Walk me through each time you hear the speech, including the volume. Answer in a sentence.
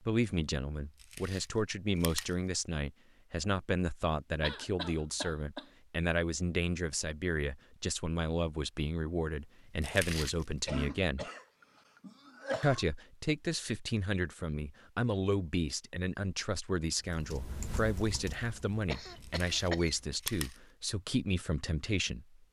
The speech can be heard from 0.0 to 11.2 s, at a steady volume; and from 12.6 to 22.4 s, at a steady volume.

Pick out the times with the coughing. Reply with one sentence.
The coughing can be heard from 4.4 to 5.7 s, from 10.7 to 12.8 s and from 18.9 to 20.0 s.